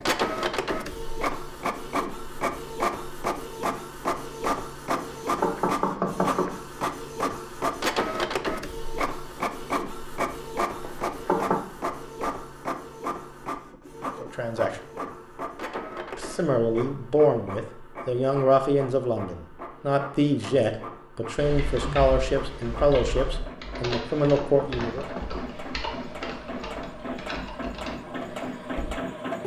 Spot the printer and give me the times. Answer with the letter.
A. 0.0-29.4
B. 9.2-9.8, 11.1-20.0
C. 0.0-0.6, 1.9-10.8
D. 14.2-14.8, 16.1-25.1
A.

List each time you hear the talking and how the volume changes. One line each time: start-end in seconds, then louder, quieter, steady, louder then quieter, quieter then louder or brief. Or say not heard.
14.2-14.8 brief
16.1-25.1 steady.